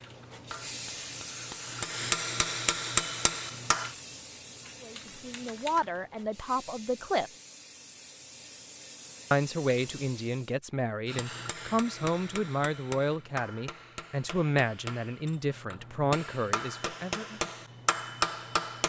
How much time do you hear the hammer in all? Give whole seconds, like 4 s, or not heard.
12 s.